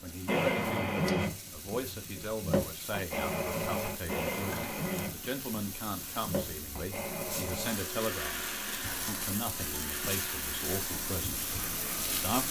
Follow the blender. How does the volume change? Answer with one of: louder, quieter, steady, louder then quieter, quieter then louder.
quieter.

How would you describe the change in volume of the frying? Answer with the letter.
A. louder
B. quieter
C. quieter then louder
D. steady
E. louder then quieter
A.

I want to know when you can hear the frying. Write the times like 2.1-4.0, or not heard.
0.0-12.4.